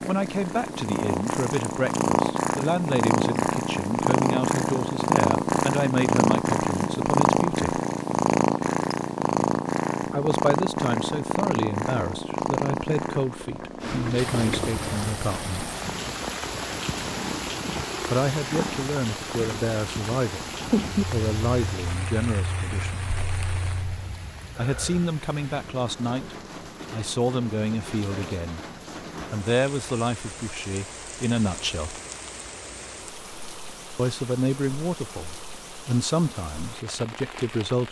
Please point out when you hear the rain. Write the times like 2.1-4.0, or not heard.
14.2-37.8.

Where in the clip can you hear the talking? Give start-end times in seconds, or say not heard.
0.1-7.8, 10.1-15.7, 18.1-23.0, 24.6-28.6, 29.3-32.0, 34.0-37.8.